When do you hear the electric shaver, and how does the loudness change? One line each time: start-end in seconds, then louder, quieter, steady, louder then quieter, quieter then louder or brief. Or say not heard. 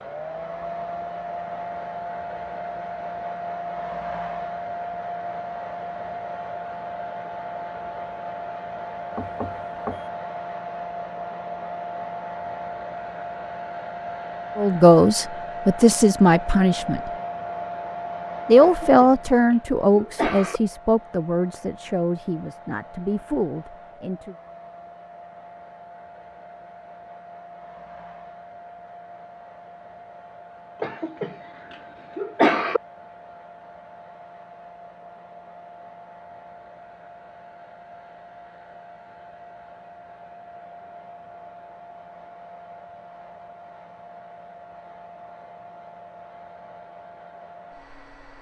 not heard.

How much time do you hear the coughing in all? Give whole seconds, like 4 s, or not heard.
4 s.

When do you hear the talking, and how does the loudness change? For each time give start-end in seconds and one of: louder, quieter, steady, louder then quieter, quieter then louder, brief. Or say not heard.
14.6-17.1 brief
18.4-24.4 quieter.